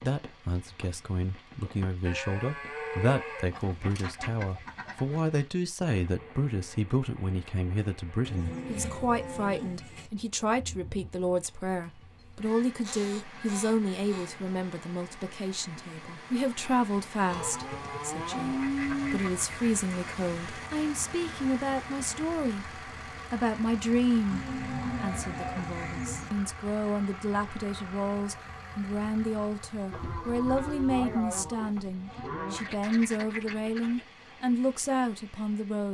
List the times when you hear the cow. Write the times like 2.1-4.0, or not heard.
2.0-4.0, 8.2-10.1, 17.2-19.2, 24.3-26.3, 29.9-32.6.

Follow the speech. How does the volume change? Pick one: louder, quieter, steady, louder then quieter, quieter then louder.
steady.